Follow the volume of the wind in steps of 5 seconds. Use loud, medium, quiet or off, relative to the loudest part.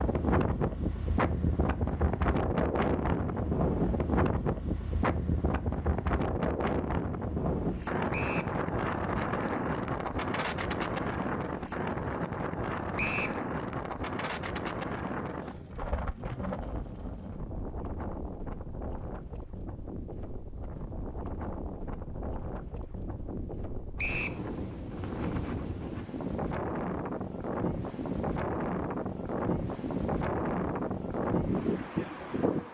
loud, loud, loud, medium, medium, loud, loud.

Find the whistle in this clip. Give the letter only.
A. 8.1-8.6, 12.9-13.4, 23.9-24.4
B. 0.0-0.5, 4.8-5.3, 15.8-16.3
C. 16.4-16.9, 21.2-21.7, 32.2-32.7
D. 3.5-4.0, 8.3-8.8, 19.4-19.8
A.